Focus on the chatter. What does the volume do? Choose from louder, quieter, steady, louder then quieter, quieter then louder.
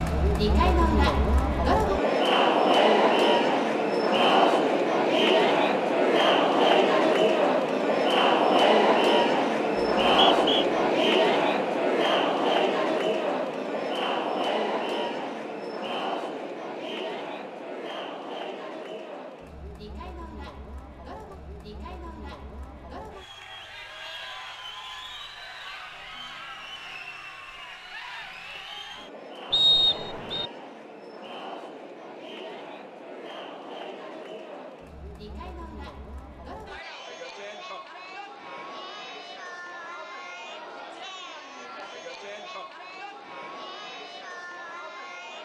quieter.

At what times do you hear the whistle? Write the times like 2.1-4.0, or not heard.
10.0-10.7, 29.5-30.5.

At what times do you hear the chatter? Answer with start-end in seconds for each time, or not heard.
0.0-45.4.